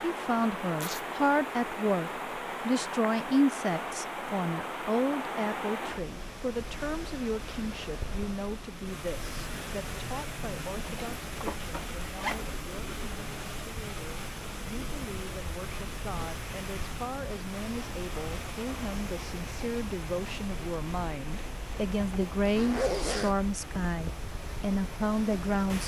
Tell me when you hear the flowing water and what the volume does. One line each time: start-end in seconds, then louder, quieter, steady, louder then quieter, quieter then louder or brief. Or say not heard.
0.0-25.8 quieter.